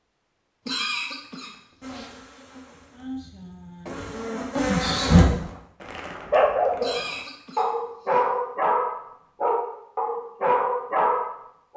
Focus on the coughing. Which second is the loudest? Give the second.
1 s.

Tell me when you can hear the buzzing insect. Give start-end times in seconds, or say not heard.
1.8-5.2.